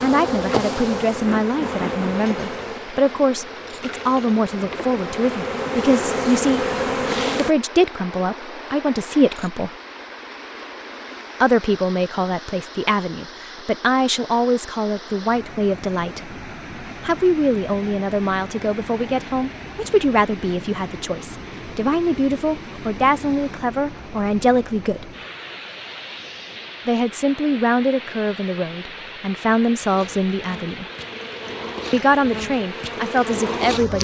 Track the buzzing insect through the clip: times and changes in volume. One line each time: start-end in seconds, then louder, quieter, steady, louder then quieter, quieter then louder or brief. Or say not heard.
0.0-7.5 quieter then louder
29.9-33.9 louder.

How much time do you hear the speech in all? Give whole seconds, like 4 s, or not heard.
28 s.